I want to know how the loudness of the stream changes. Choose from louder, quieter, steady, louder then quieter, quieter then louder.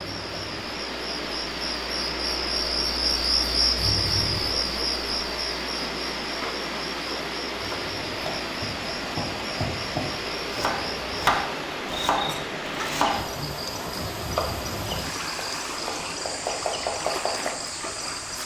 steady.